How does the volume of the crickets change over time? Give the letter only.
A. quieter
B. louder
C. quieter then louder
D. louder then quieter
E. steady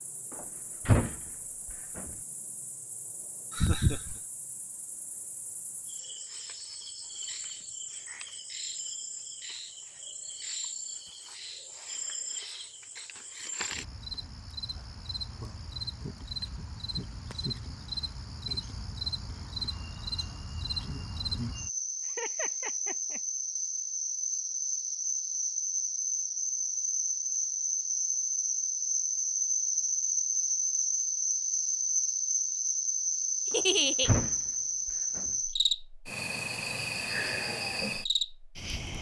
B.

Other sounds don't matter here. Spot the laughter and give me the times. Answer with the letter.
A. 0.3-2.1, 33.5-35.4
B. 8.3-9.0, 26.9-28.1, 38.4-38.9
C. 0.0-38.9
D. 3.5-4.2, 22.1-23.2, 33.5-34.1
D.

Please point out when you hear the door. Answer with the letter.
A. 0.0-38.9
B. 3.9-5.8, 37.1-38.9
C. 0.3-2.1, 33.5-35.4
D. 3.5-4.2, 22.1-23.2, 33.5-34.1
C.